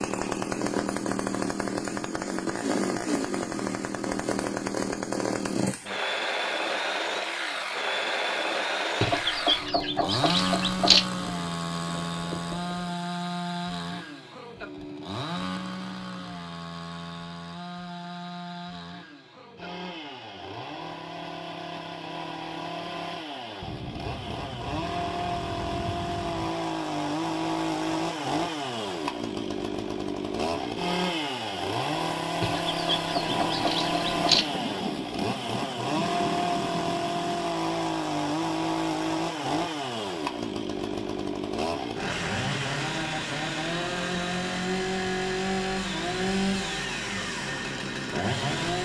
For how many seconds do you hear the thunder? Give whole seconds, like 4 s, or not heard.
9 s.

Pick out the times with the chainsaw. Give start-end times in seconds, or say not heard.
0.0-48.8.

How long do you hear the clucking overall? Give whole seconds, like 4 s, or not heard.
4 s.